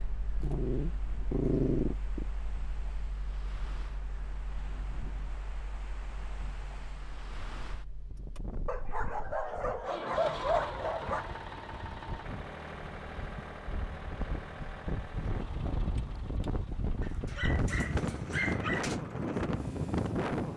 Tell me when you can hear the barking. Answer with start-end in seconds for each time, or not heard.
0.4-2.2, 8.7-11.4, 17.0-19.0.